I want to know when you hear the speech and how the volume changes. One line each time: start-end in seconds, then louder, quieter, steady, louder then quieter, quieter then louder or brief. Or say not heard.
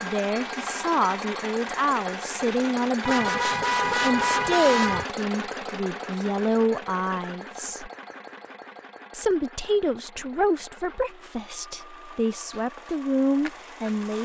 0.0-7.9 steady
9.1-14.1 quieter then louder.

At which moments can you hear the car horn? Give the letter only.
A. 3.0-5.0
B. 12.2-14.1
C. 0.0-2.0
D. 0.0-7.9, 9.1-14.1
A.